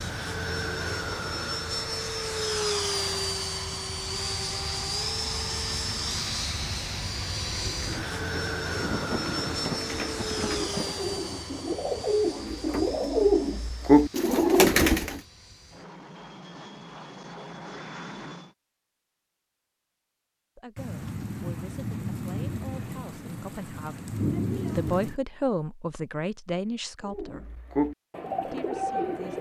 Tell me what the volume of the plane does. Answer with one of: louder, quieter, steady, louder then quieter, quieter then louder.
quieter.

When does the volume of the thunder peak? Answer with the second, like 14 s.
24 s.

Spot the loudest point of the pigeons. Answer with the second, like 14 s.
14 s.